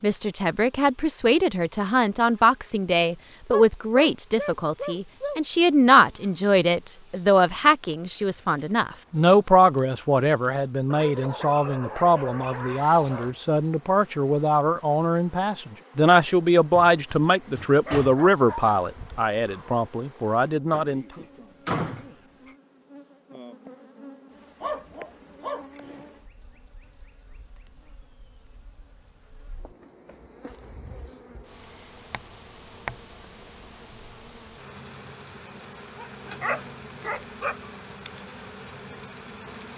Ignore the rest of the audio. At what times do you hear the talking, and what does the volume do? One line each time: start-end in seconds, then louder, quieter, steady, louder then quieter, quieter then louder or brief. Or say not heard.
0.0-21.1 steady.